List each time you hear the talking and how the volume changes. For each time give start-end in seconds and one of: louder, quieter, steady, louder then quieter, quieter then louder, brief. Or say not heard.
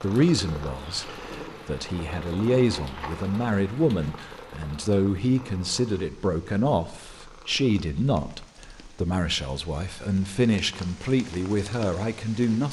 0.0-12.6 steady.